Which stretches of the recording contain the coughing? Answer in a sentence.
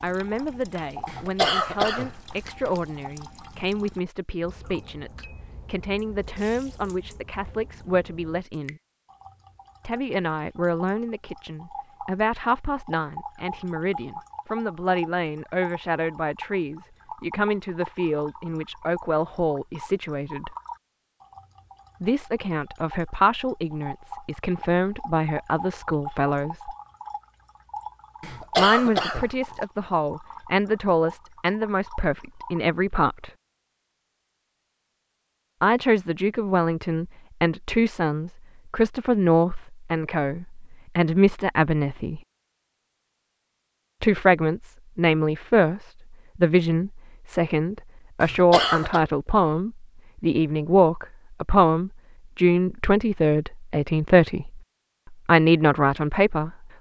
You can hear the coughing from 1.1 to 2.8 s, from 28.2 to 29.5 s and from 48.2 to 49.0 s.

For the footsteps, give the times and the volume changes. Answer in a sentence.
You can't hear the footsteps here.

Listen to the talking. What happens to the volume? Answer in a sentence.
The volume of the talking goes up.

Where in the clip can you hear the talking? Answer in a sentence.
You can hear the talking from 0.0 to 8.8 s, from 9.8 to 20.6 s, from 22.0 to 26.8 s, from 28.6 to 33.3 s, from 35.6 to 42.2 s and from 44.0 to 56.5 s.